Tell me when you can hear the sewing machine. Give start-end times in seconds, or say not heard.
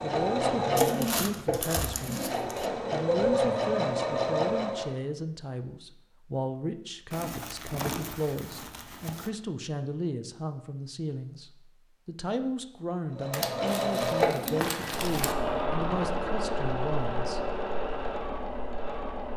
0.0-5.0, 13.1-19.3.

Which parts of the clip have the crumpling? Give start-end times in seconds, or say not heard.
0.8-2.7, 7.1-9.3, 13.3-15.3.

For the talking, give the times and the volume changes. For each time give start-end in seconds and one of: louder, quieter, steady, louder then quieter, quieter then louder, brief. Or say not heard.
0.0-2.3 brief
2.9-17.4 steady.